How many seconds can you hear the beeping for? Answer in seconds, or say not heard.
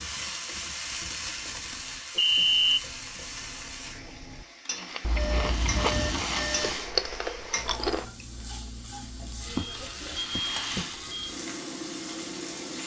4 s.